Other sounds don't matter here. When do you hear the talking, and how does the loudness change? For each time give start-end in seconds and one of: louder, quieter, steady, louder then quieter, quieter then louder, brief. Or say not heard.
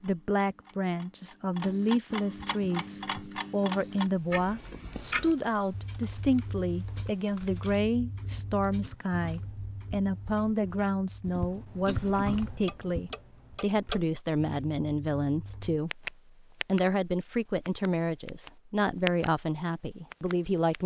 0.0-20.8 steady.